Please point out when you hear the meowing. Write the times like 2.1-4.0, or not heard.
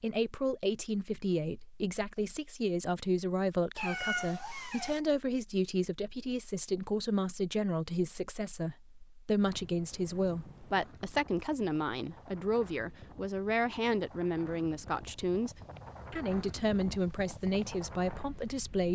3.8-5.0.